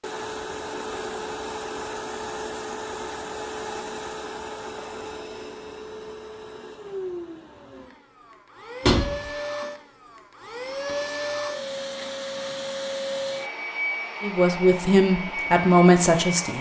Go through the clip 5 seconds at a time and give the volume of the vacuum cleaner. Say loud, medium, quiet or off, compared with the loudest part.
loud, medium, loud, loud.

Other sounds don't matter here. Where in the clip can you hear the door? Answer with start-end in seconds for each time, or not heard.
8.8-9.2.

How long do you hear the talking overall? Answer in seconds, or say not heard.
2 s.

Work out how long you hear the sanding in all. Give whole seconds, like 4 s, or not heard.
not heard.